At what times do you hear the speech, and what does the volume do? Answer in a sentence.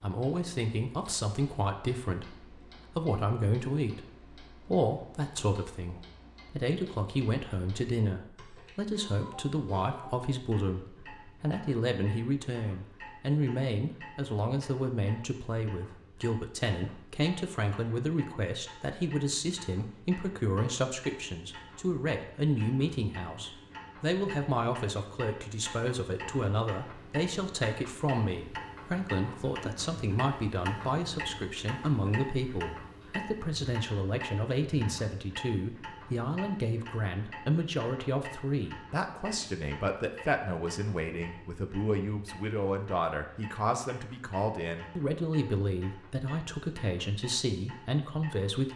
The speech can be heard from 0.0 to 48.7 s, at a steady volume.